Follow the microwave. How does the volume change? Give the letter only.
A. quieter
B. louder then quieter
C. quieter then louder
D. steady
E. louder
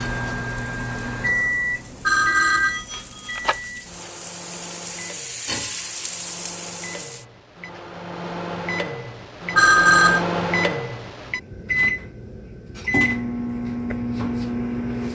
C.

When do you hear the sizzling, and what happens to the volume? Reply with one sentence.
You can hear the sizzling from 0.0 to 7.2 s, getting louder.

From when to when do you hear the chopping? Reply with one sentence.
The chopping can't be heard in this clip.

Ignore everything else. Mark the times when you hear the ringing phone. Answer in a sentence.
You can hear the ringing phone from 2.0 to 3.5 s and from 9.6 to 10.2 s.